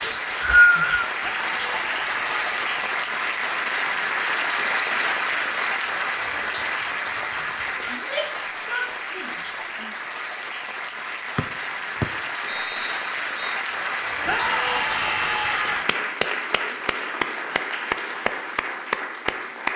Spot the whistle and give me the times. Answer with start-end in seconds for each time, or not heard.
0.0-1.1, 11.3-13.6.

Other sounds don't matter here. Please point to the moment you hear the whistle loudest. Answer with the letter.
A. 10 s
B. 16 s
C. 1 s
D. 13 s
C.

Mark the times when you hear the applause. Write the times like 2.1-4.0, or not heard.
0.0-19.7.